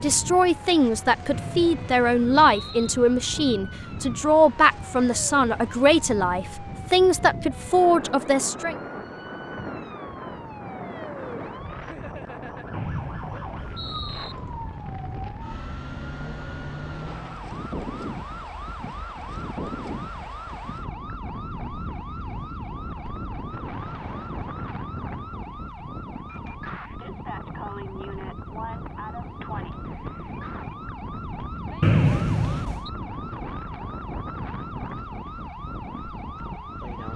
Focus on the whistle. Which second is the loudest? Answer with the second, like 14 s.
32 s.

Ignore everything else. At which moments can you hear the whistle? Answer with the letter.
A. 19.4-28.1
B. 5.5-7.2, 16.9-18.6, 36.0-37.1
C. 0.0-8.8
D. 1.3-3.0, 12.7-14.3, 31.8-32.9
D.